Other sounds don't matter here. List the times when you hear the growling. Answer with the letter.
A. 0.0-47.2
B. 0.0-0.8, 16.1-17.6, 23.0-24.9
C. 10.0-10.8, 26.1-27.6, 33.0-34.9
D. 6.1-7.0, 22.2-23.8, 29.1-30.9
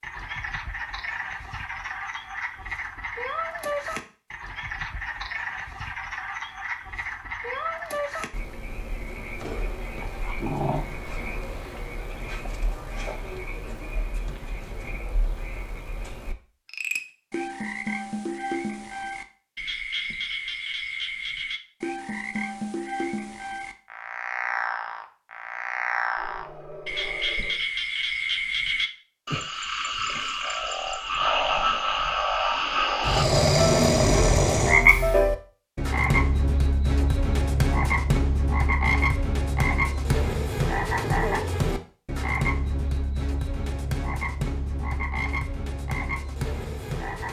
C.